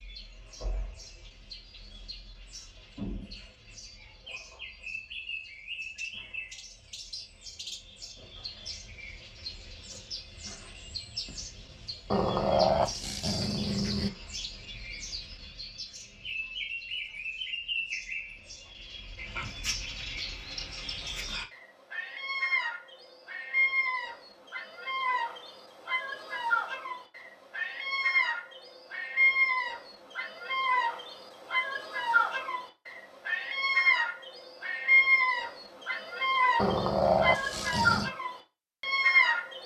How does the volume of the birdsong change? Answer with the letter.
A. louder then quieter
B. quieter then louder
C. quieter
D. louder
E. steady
D.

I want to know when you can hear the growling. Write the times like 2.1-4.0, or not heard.
12.1-14.1, 36.5-38.1.